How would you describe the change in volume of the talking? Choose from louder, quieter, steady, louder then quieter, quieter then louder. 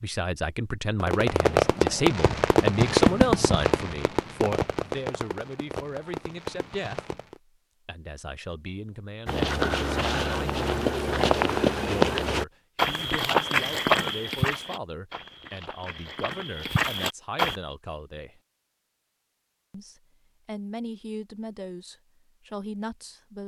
quieter.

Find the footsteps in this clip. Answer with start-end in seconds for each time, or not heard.
9.2-17.6.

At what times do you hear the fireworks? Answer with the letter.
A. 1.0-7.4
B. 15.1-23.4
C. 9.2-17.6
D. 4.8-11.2
A.